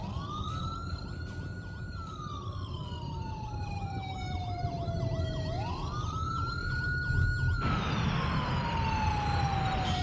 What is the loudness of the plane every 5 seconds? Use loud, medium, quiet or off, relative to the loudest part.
off, loud.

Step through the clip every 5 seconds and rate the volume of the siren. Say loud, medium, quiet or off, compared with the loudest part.
medium, loud.